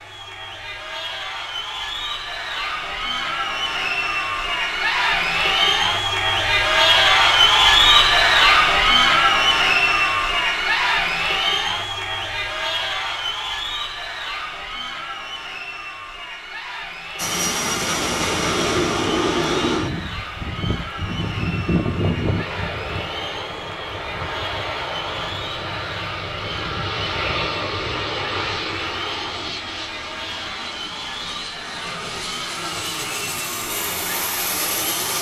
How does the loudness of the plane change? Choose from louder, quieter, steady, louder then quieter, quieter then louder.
quieter.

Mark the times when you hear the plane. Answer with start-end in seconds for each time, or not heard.
17.1-35.1.